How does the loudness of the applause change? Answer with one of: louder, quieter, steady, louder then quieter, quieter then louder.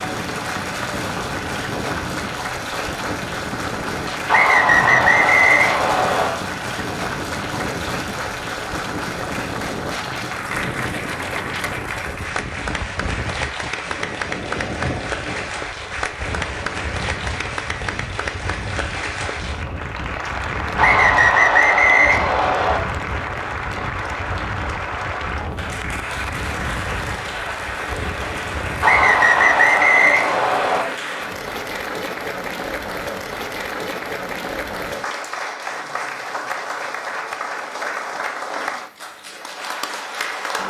steady.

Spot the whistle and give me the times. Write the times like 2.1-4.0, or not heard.
4.2-6.3, 20.8-22.8, 28.8-30.9.